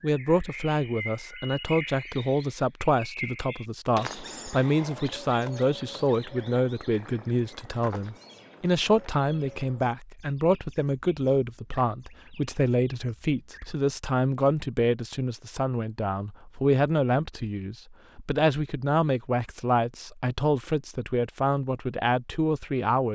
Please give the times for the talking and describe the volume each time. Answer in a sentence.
You can hear the talking from 0.0 to 23.1 s, at a steady volume.